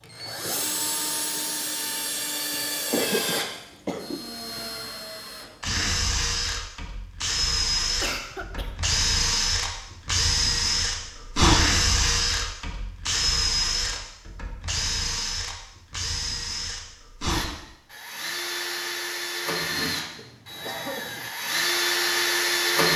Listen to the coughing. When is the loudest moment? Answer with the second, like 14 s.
3 s.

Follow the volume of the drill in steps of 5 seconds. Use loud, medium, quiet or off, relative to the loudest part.
medium, loud, loud, medium, loud.